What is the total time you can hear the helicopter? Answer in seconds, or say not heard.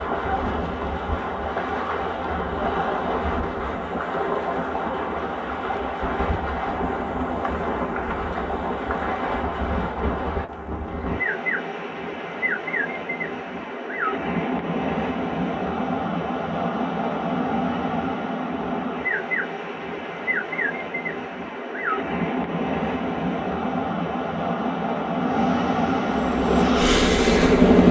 2 s.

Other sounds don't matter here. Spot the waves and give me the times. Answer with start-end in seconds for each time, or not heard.
0.0-27.8.